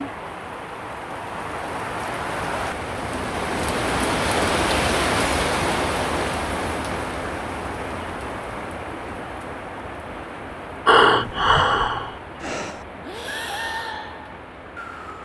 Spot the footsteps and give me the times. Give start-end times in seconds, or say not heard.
not heard.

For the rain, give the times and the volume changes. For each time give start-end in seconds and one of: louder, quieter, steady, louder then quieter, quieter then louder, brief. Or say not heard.
0.0-15.2 louder then quieter.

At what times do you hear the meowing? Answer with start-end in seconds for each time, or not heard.
not heard.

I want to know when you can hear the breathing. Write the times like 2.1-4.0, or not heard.
10.8-15.2.